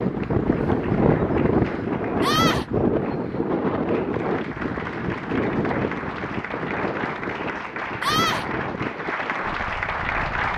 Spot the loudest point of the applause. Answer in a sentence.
The volume of the applause peaks at 10 seconds.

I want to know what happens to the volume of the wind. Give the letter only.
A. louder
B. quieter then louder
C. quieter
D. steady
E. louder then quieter
C.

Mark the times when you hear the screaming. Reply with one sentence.
The screaming can be heard from 2.2 to 2.6 s and from 8.0 to 8.4 s.